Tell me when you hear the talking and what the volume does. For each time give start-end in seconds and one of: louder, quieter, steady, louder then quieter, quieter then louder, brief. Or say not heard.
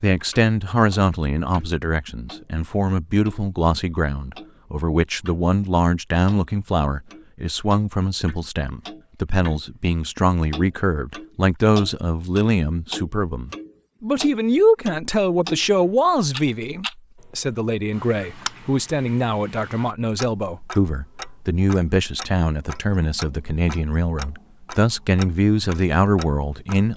0.0-26.9 steady.